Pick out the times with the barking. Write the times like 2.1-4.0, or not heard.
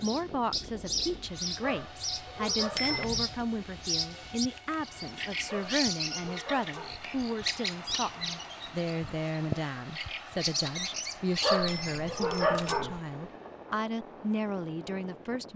1.6-3.1, 5.5-7.0, 11.4-13.0.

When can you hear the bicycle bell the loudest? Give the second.
3 s.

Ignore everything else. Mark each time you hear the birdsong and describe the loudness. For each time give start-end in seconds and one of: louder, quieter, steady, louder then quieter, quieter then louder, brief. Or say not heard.
0.0-12.4 steady.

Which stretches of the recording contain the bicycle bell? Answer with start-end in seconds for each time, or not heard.
2.8-3.4, 11.7-12.6.